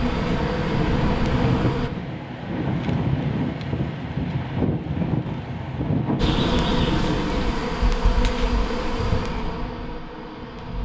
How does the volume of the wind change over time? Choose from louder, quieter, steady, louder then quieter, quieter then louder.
steady.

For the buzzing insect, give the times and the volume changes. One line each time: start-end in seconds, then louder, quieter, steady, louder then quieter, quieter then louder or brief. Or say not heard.
0.0-1.9 brief
6.2-10.7 quieter.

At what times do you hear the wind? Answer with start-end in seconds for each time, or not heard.
0.0-7.2.